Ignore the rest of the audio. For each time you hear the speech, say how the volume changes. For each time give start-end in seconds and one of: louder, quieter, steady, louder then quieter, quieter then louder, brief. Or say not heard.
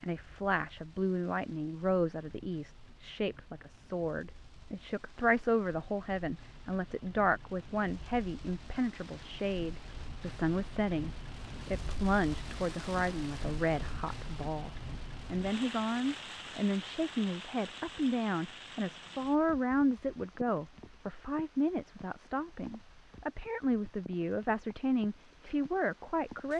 0.0-26.5 steady.